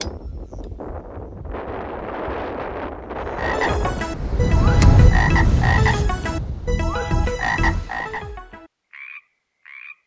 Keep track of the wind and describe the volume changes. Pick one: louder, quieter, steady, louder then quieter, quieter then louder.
louder then quieter.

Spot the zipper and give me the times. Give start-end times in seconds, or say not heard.
5.4-6.1.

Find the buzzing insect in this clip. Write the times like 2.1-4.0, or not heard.
not heard.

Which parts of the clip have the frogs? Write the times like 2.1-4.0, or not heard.
3.1-10.0.